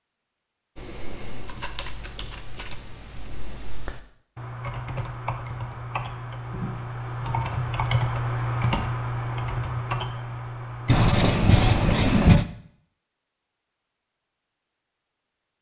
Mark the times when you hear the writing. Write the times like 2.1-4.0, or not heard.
10.8-12.4.